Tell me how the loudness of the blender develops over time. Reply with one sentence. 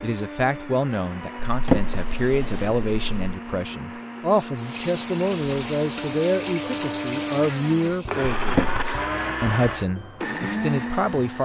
The volume of the blender goes up.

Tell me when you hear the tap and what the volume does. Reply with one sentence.
The tap can be heard from 4.5 to 9.3 s, getting quieter.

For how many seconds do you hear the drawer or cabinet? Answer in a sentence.
You can hear the drawer or cabinet for 2 seconds altogether.